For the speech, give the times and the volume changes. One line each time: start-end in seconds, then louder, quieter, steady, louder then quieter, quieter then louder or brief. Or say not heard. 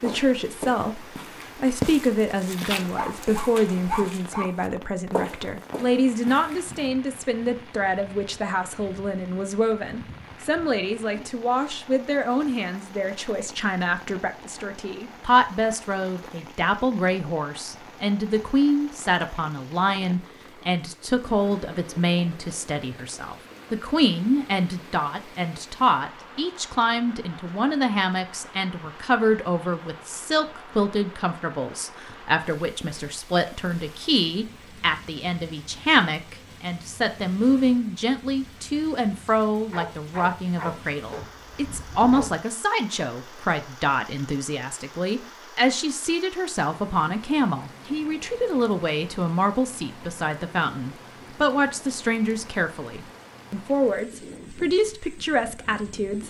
0.0-56.2 steady.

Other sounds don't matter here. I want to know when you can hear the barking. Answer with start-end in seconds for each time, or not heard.
2.8-4.5, 39.7-42.4.